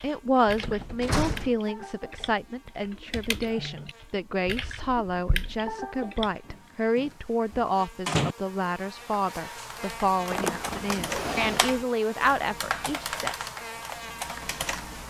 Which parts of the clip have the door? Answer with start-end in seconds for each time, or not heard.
0.6-1.5, 6.5-8.3, 10.3-11.7.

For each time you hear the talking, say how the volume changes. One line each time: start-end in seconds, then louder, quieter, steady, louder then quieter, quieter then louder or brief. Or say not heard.
0.0-13.3 steady.